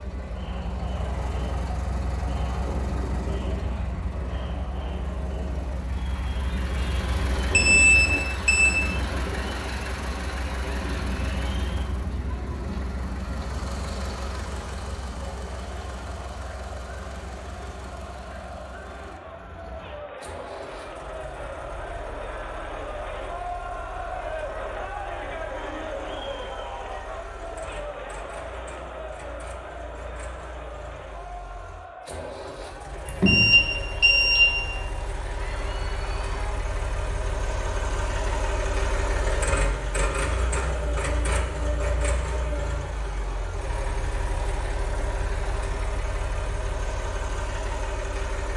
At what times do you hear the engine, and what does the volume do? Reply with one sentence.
The engine can be heard from 0.0 to 48.5 s, getting quieter then louder.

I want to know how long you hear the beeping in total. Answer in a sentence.
You can hear the beeping for 3 seconds altogether.